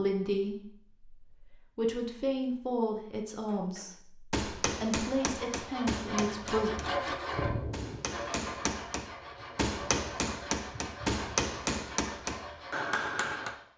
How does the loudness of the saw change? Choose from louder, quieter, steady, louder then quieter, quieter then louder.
quieter.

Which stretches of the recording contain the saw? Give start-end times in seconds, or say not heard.
5.0-13.7.